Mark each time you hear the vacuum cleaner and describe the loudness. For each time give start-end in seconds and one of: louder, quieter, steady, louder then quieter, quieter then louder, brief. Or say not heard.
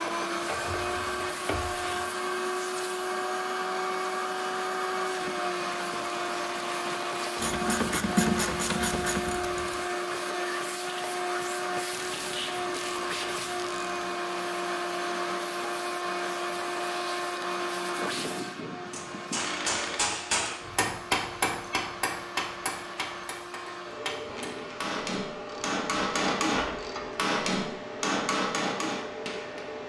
0.0-29.8 quieter.